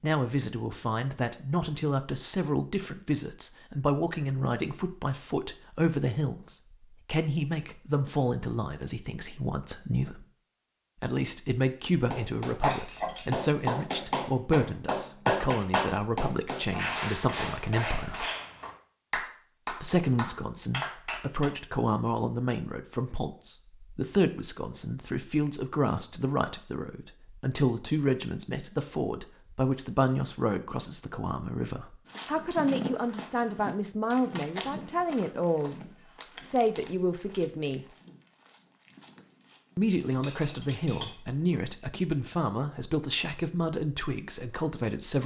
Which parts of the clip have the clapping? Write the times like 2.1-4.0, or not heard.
12.1-21.5.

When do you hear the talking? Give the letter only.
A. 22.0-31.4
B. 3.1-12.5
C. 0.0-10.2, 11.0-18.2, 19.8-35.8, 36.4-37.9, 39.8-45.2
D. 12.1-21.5
C.